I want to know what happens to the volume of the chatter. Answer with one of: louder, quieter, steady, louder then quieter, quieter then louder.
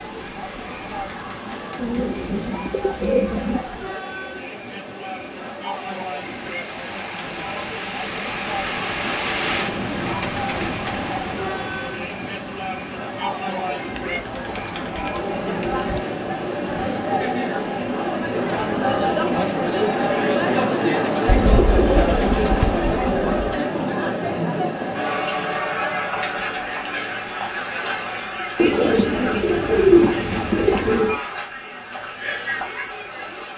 louder then quieter.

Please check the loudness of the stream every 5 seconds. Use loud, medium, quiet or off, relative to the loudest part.
medium, loud, loud, medium, off, off, off.